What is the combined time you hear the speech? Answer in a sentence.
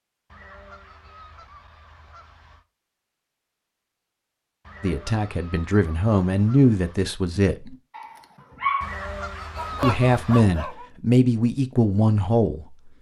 The speech can be heard for 6 seconds in total.